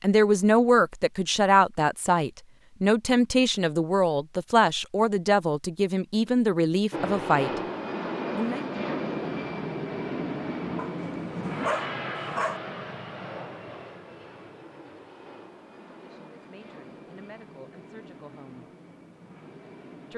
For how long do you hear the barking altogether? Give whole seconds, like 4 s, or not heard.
2 s.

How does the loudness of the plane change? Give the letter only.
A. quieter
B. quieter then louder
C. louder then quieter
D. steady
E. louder
A.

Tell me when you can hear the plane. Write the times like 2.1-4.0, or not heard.
6.9-20.1.